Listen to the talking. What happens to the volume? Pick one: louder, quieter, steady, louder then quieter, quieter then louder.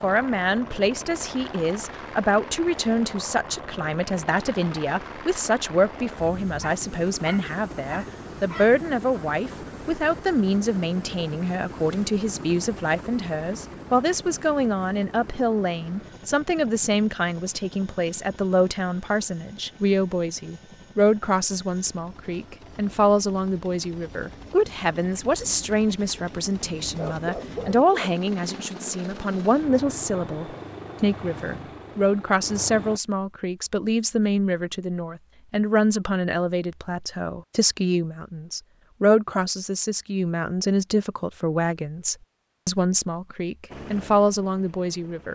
steady.